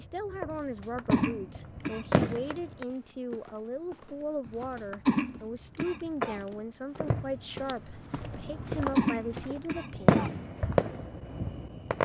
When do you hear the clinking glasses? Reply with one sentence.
The clinking glasses can't be heard in this clip.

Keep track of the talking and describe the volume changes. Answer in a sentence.
The loudness of the talking stays about the same.